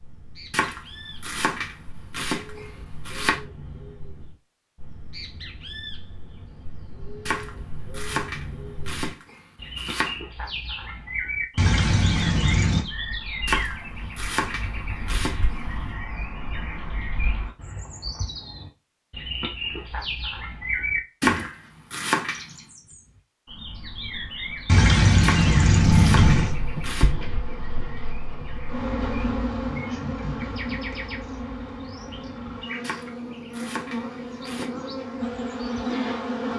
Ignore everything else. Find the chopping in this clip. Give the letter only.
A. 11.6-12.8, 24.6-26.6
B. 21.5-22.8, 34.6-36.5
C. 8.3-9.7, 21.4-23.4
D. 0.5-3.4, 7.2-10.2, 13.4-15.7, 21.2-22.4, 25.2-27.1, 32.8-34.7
D.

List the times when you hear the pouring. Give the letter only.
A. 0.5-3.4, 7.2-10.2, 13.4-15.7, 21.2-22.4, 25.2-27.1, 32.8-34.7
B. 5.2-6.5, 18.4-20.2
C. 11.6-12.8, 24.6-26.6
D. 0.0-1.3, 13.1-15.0
C.